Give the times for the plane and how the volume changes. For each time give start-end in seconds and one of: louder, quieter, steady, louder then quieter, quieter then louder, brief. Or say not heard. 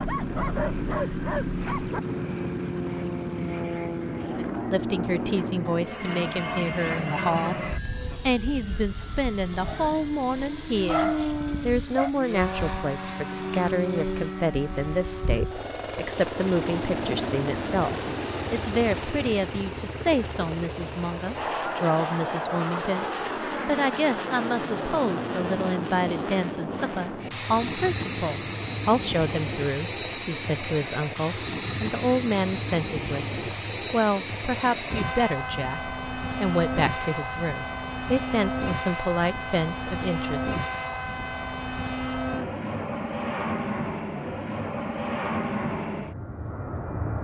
0.0-47.1 steady.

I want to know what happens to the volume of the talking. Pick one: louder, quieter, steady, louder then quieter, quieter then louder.
steady.